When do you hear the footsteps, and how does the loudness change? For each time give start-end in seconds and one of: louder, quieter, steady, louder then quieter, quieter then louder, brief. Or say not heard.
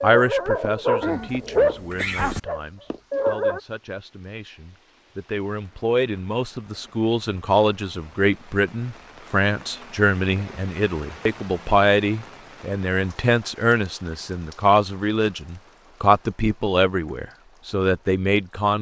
not heard.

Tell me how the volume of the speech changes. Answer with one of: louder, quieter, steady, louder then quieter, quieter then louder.
louder.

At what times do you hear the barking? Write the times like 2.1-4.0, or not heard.
0.0-3.6.